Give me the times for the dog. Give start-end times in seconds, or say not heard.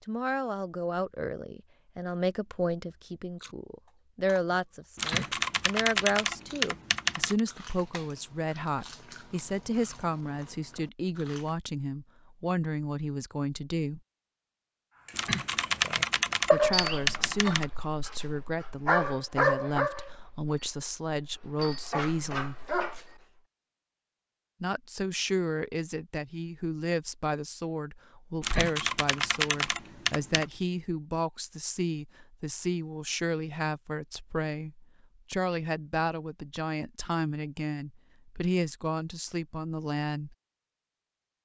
15.1-23.1.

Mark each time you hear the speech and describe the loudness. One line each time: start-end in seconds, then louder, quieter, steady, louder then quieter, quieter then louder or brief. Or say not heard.
0.1-14.0 steady
16.5-22.6 steady
24.6-40.4 steady.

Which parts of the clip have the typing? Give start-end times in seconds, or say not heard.
5.0-7.4, 15.2-17.6, 28.4-30.4.